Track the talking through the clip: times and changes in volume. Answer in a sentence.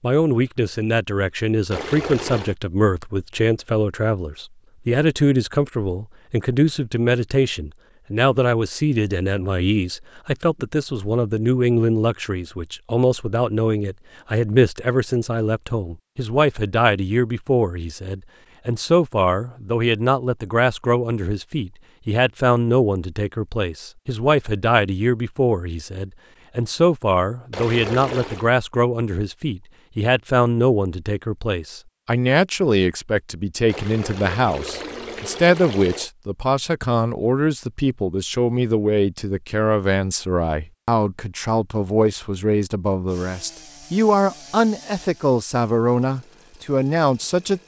You can hear the talking from 0.0 to 47.6 s, at a steady volume.